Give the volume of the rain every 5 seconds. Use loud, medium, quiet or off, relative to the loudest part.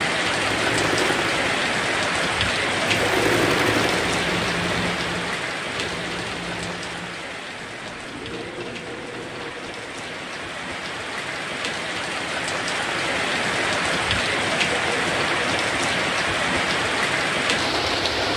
loud, medium, loud, loud.